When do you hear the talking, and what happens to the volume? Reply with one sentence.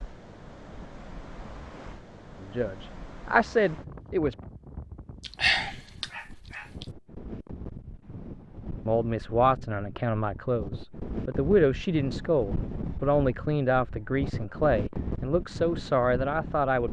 The talking can be heard briefly from 2.4 to 4.3 s; and from 8.8 to 16.8 s, at a steady volume.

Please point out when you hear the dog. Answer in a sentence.
You can hear the dog from 5.2 to 6.8 s.